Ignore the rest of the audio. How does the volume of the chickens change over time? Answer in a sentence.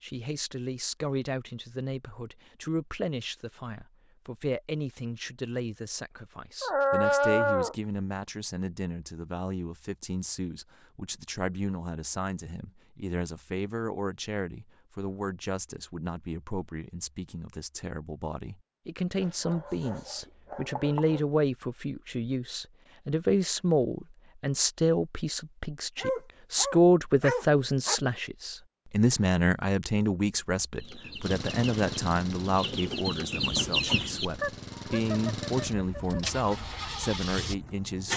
The loudness of the chickens goes up, then down.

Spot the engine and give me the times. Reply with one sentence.
The engine can be heard from 31.2 to 38.1 s.